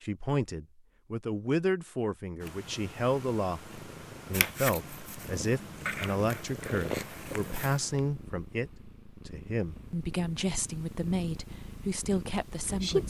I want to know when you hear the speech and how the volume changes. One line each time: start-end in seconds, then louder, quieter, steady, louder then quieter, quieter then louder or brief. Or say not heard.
0.0-13.0 steady.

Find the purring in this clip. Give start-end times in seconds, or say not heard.
2.4-13.0.